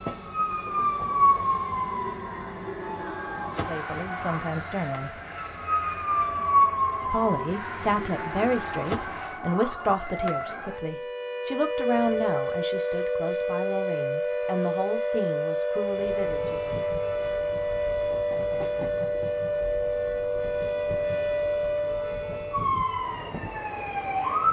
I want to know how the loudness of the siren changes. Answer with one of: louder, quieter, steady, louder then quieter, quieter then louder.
steady.